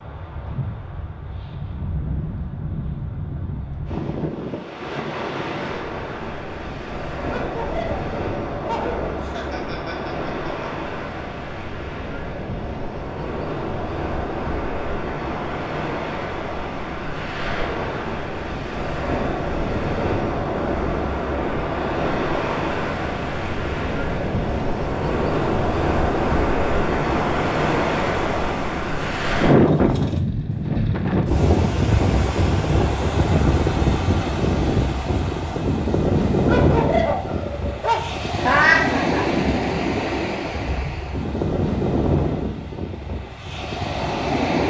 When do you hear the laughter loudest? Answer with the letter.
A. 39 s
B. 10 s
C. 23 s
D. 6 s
A.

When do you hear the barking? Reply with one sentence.
You can hear the barking from 7.3 to 9.2 s and from 36.5 to 38.0 s.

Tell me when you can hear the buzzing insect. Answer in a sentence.
You can't hear the buzzing insect here.